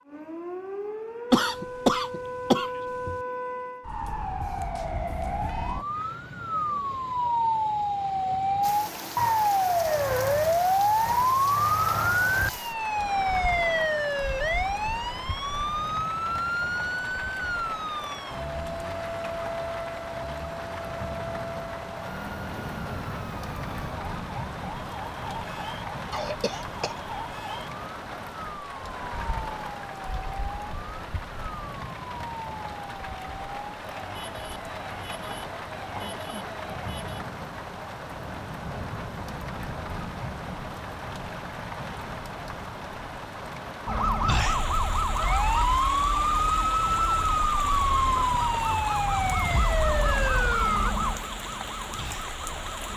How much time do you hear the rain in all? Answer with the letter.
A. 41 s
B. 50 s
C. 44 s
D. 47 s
C.